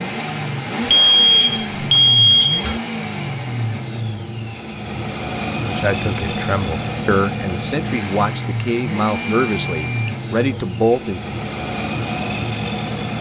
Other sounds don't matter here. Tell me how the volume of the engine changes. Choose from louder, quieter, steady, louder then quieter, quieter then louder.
steady.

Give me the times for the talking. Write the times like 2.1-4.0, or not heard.
5.7-11.2.